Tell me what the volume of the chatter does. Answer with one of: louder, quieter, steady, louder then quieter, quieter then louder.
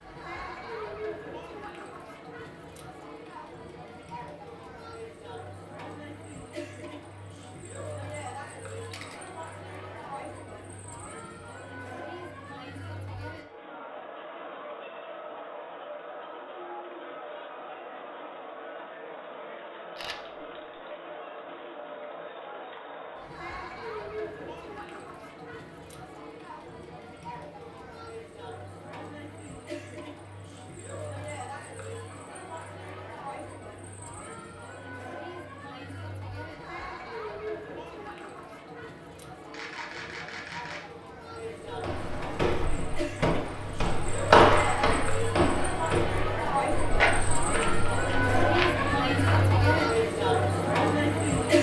louder.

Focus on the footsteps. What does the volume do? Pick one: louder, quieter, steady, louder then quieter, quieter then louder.
louder then quieter.